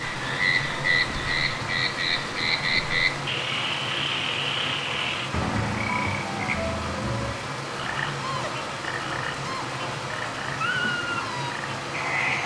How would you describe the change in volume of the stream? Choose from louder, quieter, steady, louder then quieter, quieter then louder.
steady.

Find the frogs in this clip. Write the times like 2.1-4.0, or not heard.
0.0-12.4.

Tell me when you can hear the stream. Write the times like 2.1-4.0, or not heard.
0.0-12.4.